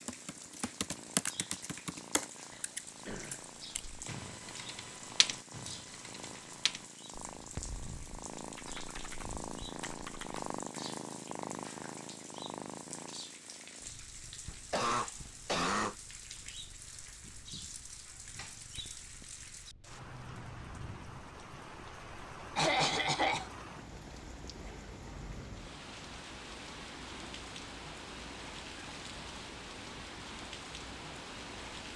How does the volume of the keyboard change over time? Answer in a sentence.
The loudness of the keyboard goes down.